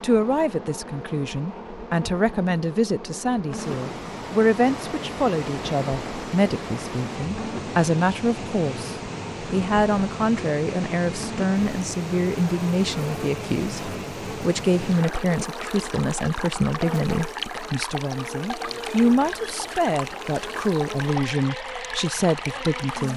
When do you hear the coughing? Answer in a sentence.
You can't hear the coughing here.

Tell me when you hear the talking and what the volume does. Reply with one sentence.
The talking can be heard from 0.0 to 23.1 s, at a steady volume.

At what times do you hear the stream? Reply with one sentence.
You can hear the stream from 3.5 to 23.1 s.